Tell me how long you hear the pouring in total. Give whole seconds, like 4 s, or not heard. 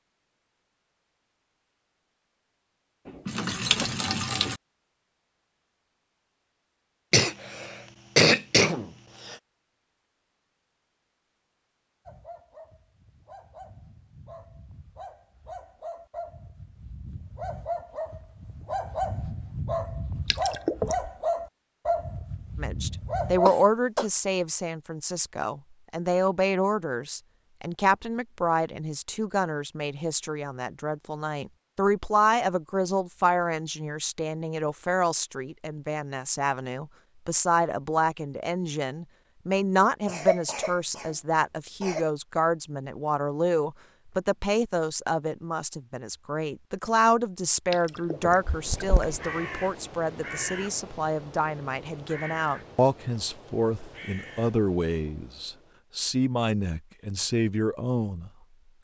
4 s.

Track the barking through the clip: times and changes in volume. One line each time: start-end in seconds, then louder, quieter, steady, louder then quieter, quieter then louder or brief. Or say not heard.
12.1-23.5 louder.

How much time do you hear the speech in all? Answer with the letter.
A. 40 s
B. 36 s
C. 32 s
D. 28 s
B.